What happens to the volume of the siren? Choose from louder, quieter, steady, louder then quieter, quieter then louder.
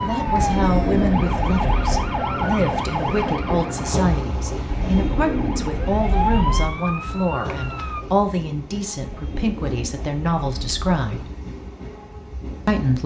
quieter then louder.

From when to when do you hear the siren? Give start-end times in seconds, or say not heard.
0.0-8.0.